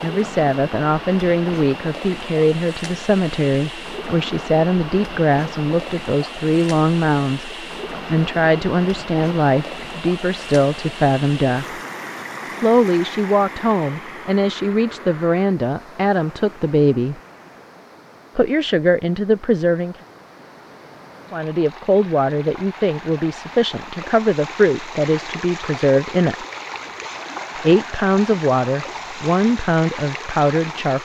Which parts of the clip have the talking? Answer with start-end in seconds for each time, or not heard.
0.0-11.8, 12.5-17.2, 18.4-19.9, 21.3-26.4, 27.6-30.9.